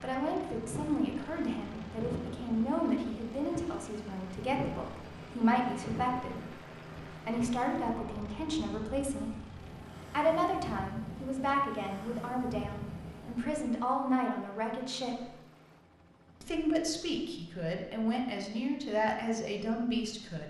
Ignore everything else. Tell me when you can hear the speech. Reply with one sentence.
The speech can be heard from 0.0 to 6.5 s, from 7.2 to 9.3 s, from 10.1 to 15.3 s and from 16.4 to 20.4 s.